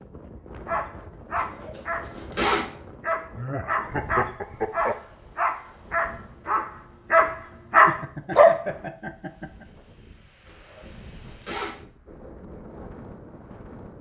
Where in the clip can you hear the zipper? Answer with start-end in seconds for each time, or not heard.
1.4-2.6, 10.4-11.8.